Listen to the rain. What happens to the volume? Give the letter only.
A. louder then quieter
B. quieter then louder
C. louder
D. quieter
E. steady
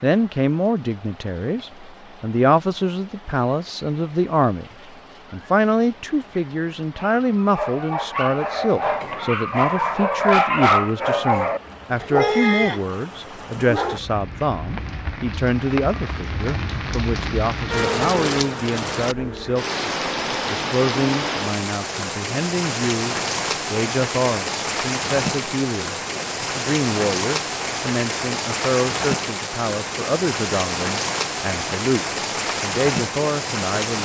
C.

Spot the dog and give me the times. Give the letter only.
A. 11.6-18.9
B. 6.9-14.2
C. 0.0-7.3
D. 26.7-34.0
B.